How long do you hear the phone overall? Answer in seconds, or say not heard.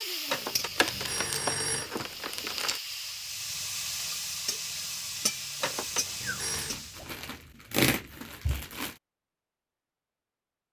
3 s.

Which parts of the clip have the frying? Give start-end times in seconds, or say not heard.
0.0-7.1.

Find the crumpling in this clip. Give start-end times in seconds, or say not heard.
0.8-2.8, 6.5-8.9.